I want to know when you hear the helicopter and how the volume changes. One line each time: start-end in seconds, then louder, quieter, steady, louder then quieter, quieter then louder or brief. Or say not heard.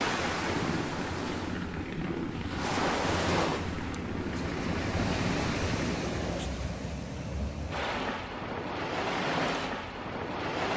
0.0-6.4 steady.